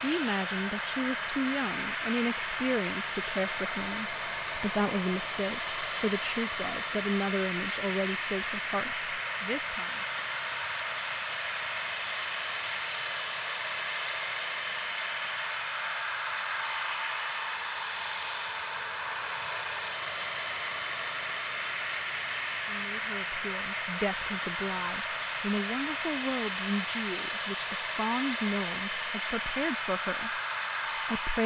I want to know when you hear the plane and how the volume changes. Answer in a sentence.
The plane can be heard from 0.0 to 31.4 s, at a steady volume.